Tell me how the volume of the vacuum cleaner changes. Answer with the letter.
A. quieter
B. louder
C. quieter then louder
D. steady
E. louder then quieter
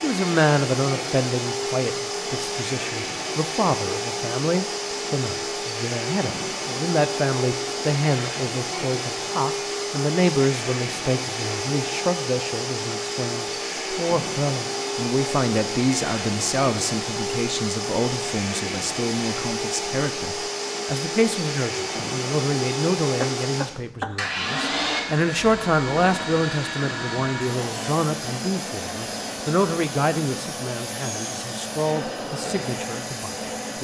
D.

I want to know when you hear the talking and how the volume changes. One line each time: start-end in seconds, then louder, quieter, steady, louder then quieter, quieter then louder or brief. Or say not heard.
0.0-33.7 steady.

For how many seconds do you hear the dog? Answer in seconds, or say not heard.
not heard.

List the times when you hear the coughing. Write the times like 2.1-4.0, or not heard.
23.1-24.2.